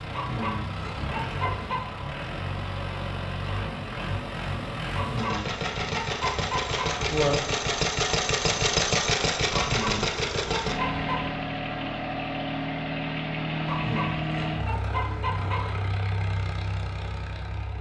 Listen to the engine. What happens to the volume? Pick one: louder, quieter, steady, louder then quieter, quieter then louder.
louder then quieter.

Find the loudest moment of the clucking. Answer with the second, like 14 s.
7 s.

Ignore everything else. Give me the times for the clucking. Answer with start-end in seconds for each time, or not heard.
0.1-2.0, 4.9-7.3, 9.5-11.2, 13.7-15.9.